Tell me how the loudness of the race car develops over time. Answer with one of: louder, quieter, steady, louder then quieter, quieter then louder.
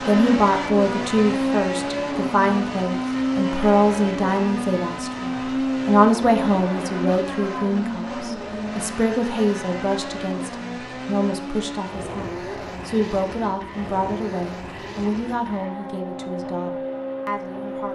quieter.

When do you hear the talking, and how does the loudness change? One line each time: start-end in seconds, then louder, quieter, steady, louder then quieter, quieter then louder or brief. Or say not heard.
0.1-17.8 quieter.